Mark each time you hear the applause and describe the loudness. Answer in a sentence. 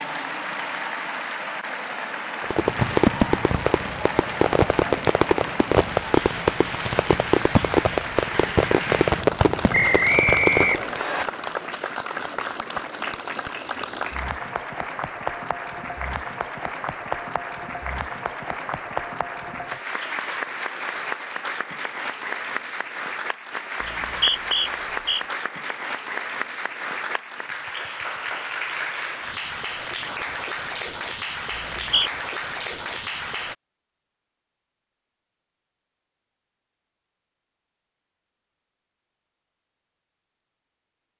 The applause can be heard from 0.0 to 33.5 s, at a steady volume.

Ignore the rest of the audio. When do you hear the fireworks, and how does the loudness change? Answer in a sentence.
The fireworks can be heard from 2.4 to 10.8 s, at a steady volume.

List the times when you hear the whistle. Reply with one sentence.
You can hear the whistle from 9.7 to 11.2 s, from 23.8 to 25.2 s and from 31.5 to 32.1 s.